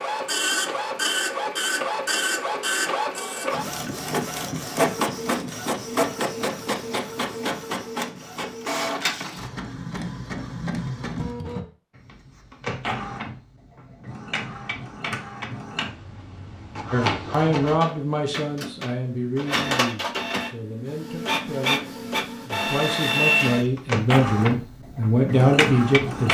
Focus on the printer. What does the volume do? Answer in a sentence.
The volume of the printer goes down, then up.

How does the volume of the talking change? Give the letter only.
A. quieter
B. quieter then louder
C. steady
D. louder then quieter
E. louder
B.